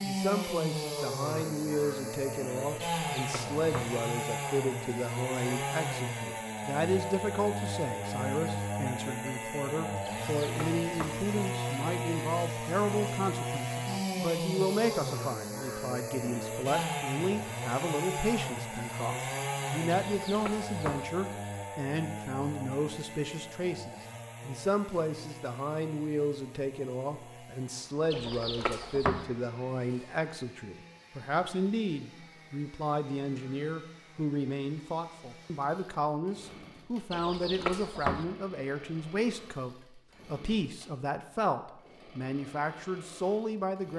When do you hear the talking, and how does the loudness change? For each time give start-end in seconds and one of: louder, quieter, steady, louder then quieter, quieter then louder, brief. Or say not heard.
0.0-43.9 steady.